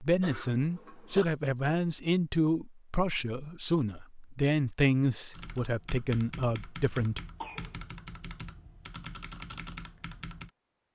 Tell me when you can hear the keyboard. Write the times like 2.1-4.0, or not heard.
5.3-10.5.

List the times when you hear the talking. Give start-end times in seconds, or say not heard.
0.0-7.2.